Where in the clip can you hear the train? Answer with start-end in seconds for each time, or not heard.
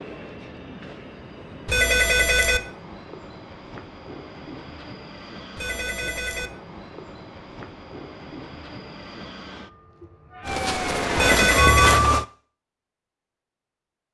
0.0-10.6.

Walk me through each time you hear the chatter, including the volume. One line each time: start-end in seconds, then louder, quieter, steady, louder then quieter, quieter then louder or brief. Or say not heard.
not heard.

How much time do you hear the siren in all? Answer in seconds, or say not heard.
2 s.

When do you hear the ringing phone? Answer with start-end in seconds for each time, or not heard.
1.6-2.6, 5.5-6.5, 11.2-12.1.